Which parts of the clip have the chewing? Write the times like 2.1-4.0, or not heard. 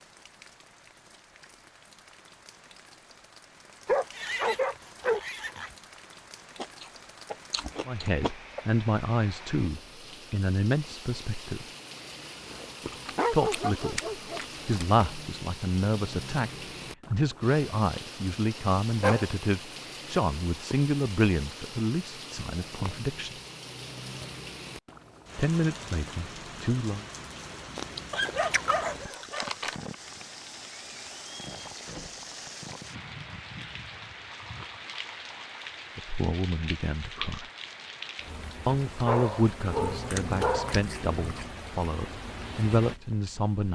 6.5-8.7, 12.8-14.8, 27.8-29.8, 39.7-41.5.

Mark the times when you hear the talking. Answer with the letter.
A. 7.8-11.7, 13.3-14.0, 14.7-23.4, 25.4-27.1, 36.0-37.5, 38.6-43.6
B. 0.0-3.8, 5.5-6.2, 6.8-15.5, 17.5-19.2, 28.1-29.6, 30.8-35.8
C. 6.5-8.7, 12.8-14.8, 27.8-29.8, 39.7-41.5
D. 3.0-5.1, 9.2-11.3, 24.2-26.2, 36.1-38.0
A.